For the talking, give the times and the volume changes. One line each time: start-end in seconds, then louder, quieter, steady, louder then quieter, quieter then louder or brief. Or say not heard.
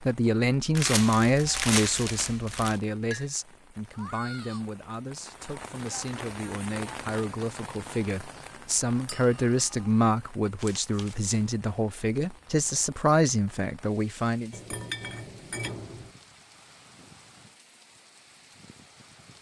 0.0-14.6 quieter then louder.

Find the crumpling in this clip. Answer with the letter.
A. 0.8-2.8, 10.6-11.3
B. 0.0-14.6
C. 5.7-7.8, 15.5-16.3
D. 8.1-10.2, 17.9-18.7
A.